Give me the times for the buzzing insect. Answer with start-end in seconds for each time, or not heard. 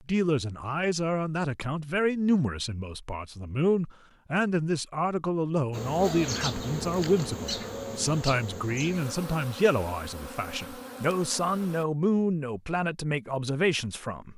5.7-11.8.